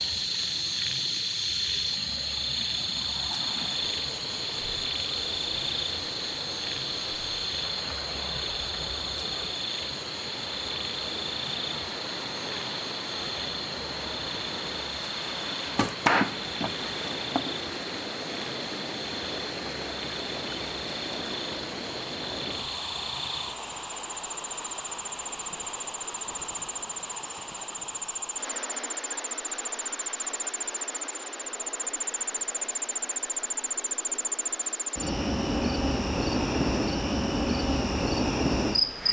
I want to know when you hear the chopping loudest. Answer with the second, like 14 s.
16 s.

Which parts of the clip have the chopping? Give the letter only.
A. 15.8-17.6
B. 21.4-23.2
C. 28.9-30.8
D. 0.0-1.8
A.